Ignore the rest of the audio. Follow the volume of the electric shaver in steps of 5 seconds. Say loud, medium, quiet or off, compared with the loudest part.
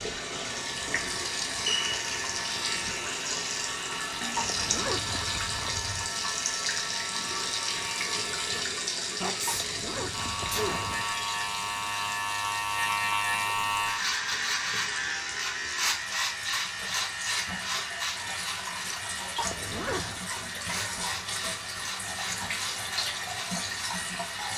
medium, medium, loud, loud, medium.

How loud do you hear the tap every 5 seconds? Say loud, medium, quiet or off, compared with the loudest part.
loud, loud, medium, medium, loud.